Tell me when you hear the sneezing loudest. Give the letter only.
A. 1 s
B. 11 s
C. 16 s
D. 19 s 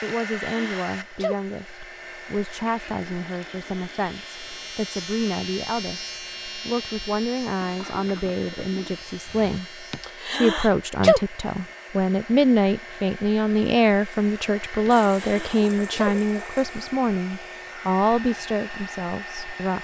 B.